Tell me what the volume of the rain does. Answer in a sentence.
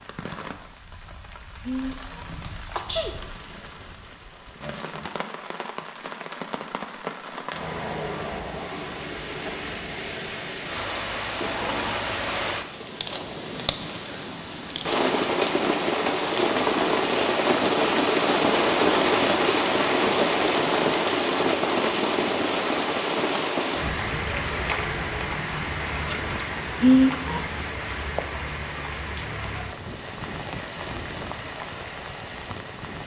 The loudness of the rain goes up, then down.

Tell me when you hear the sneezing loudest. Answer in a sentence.
The volume of the sneezing peaks at 27 seconds.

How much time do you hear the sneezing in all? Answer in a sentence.
You can hear the sneezing for 2 seconds altogether.